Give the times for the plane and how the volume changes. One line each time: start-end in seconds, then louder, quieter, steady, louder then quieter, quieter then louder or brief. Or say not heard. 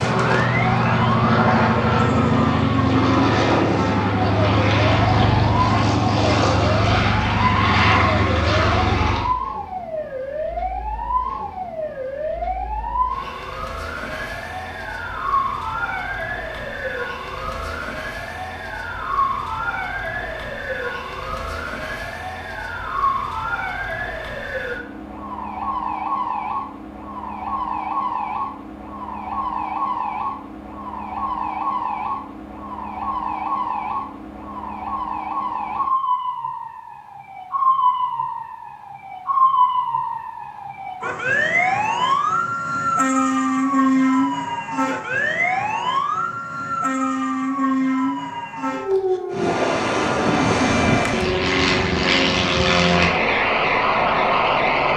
0.0-9.3 steady
49.3-54.9 steady.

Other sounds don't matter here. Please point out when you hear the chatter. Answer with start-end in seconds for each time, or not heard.
not heard.